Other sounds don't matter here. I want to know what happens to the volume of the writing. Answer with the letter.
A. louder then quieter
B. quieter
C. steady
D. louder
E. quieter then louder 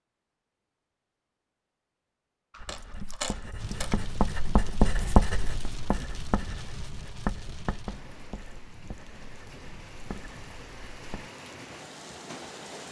A.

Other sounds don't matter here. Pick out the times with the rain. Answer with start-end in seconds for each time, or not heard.
3.5-12.8.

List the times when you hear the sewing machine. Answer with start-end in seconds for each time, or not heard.
not heard.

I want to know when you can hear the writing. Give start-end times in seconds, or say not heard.
2.5-11.3.